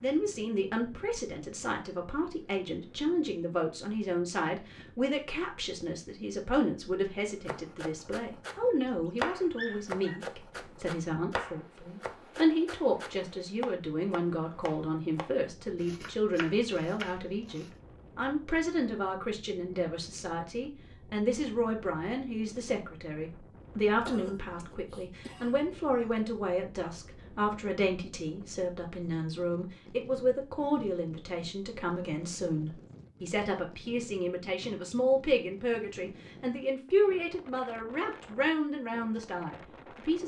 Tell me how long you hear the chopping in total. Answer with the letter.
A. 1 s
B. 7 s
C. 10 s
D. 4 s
C.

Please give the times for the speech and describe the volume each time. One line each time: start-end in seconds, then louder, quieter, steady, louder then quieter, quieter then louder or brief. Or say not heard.
0.0-40.2 steady.